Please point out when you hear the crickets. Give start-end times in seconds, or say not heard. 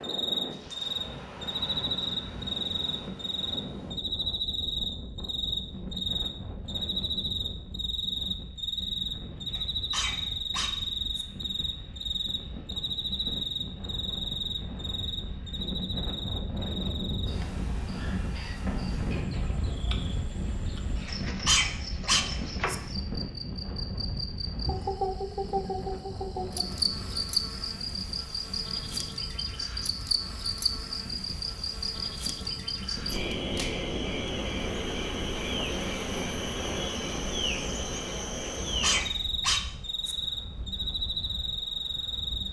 0.0-42.4.